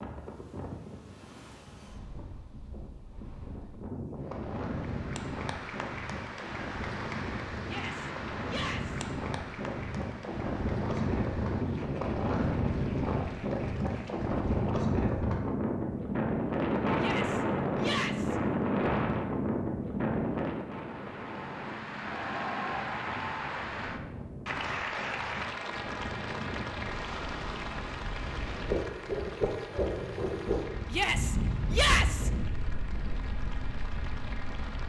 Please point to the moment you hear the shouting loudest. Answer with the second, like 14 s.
32 s.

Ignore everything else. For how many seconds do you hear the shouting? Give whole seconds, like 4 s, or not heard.
4 s.